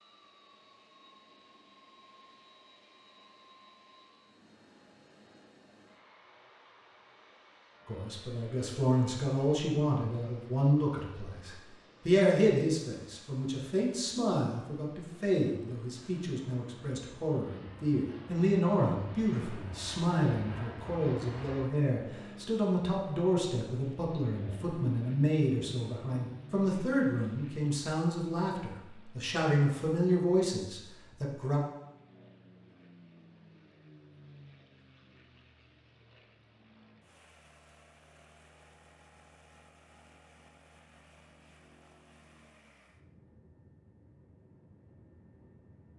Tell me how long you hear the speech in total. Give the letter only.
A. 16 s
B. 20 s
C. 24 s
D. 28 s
C.